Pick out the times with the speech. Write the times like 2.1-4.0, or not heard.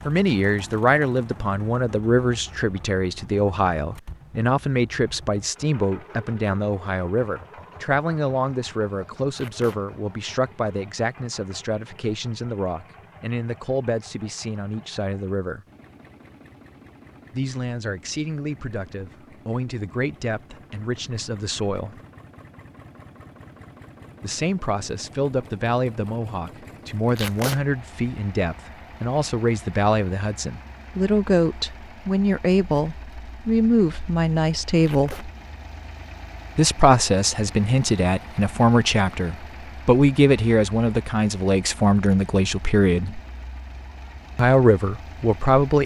0.1-15.7, 17.3-21.9, 24.2-35.3, 36.5-43.2, 44.4-45.8.